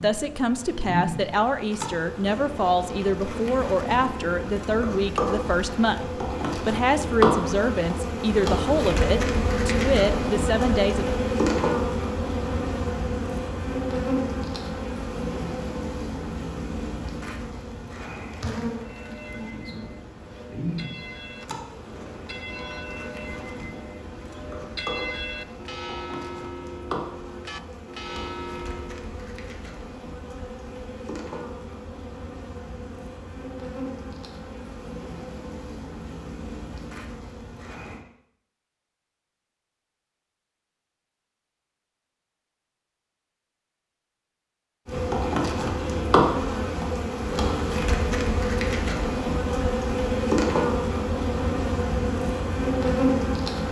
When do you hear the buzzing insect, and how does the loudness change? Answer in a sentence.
The buzzing insect can be heard from 0.0 to 38.0 s, getting quieter; and from 44.9 to 53.6 s, at a steady volume.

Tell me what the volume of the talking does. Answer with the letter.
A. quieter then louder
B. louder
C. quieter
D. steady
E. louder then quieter
D.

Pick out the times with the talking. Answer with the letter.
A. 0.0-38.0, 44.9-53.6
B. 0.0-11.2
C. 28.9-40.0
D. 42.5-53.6
B.